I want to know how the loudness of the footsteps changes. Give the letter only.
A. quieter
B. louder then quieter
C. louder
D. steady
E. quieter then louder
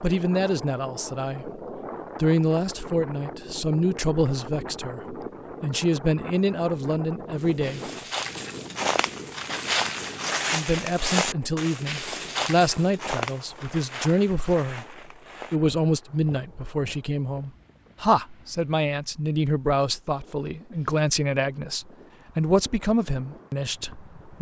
A.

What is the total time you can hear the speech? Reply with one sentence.
The speech can be heard for 22 seconds in total.